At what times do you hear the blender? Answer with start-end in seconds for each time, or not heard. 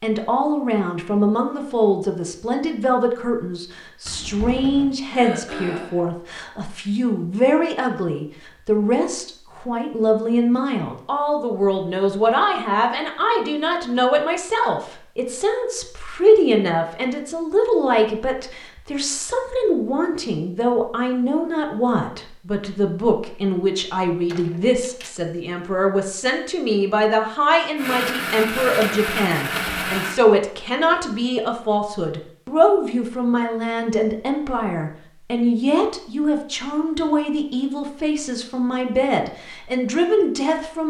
27.8-30.2.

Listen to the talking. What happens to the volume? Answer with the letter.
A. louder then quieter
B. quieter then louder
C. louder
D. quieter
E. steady
E.